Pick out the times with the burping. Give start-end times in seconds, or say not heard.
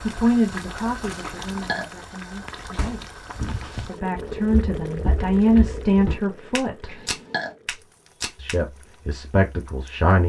1.2-1.9, 6.8-7.5.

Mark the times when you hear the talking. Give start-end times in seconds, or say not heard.
0.0-3.2, 3.9-7.0, 8.3-10.2.